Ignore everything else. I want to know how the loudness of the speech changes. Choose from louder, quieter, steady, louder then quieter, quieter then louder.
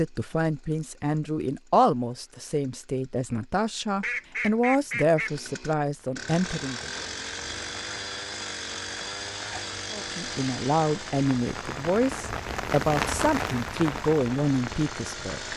steady.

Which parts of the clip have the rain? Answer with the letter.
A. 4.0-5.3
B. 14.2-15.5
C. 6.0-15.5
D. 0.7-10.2
C.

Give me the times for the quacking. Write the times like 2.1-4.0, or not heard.
4.0-5.3.